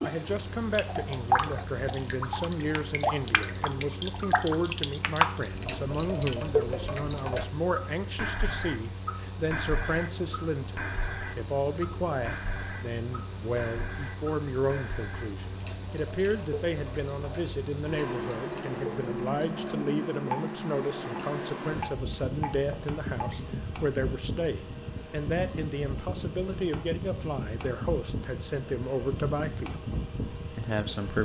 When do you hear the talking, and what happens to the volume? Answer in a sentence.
You can hear the talking from 0.0 to 31.2 s, at a steady volume.